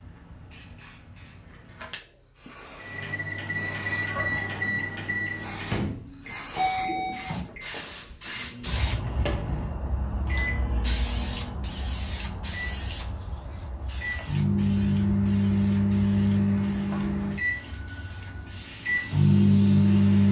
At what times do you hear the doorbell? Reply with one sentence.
The doorbell can be heard from 6.5 to 7.2 s and from 17.6 to 18.6 s.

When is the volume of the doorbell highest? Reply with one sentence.
The volume of the doorbell peaks at 7 seconds.